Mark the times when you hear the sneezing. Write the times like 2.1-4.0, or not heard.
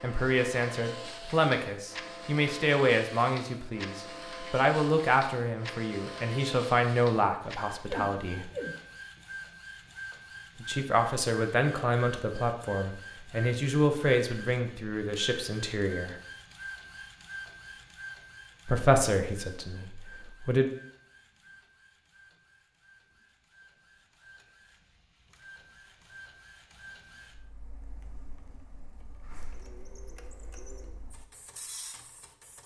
7.8-9.2.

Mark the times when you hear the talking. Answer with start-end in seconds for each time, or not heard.
0.0-8.5, 10.6-16.1, 18.6-20.7.